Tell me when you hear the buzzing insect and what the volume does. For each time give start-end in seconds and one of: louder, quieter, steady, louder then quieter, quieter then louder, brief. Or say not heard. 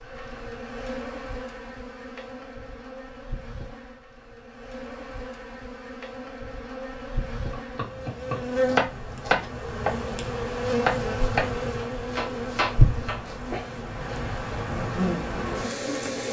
0.0-16.2 louder.